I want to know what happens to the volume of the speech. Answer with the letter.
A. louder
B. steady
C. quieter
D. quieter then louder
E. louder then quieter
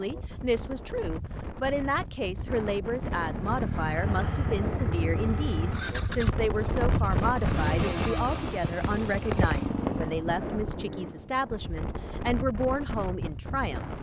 B.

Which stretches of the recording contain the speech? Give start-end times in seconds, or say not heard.
0.0-13.9.